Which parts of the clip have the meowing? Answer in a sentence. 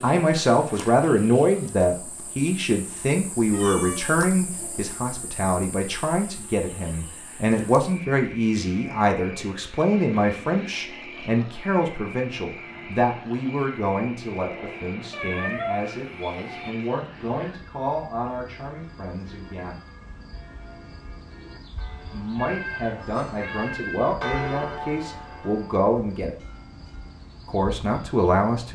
The meowing can be heard from 3.5 to 4.9 s, from 15.1 to 16.7 s and from 22.4 to 24.1 s.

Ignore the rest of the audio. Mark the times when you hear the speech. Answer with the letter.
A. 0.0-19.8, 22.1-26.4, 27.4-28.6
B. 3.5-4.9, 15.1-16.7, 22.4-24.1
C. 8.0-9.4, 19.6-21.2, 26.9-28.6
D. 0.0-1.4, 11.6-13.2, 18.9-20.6
A.